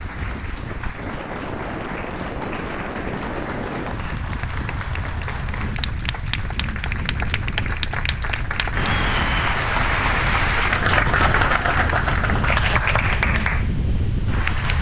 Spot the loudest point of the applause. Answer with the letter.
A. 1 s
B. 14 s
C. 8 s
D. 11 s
D.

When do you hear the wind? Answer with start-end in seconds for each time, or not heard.
0.0-14.7.